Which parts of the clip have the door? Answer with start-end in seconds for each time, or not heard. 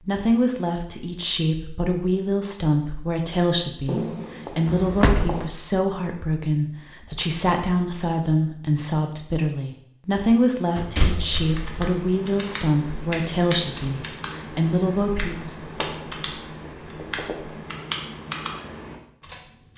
4.7-5.3, 10.8-11.8.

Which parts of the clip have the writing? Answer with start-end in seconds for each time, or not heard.
3.9-5.5, 15.6-17.6.